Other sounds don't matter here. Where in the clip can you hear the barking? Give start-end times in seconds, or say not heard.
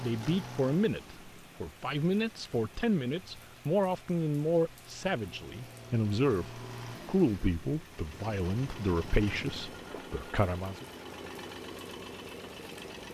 not heard.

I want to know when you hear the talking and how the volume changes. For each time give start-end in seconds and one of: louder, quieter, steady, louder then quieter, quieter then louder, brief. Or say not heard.
0.0-10.8 steady.